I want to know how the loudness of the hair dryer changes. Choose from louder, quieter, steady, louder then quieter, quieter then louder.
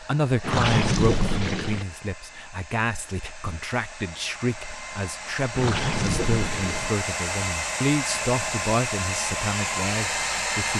louder.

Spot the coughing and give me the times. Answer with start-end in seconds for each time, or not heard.
not heard.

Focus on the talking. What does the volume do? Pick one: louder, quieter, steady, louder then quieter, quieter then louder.
steady.